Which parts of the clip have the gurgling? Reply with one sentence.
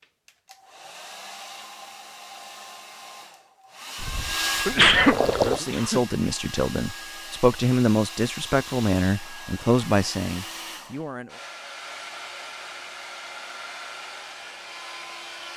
You can hear the gurgling from 4.0 to 5.6 s.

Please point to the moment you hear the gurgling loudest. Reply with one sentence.
The loudest moment of the gurgling is at 5 seconds.